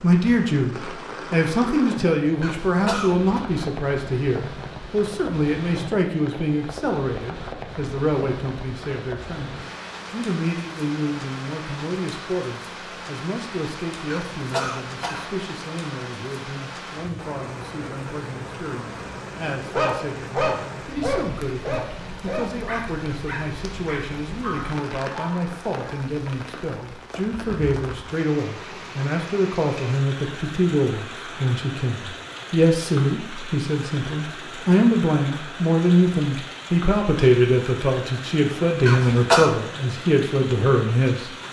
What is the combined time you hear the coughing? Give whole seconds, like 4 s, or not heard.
3 s.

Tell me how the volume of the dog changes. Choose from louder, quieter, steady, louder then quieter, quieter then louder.
quieter.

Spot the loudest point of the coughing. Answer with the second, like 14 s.
39 s.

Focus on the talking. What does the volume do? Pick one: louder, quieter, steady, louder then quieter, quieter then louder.
quieter then louder.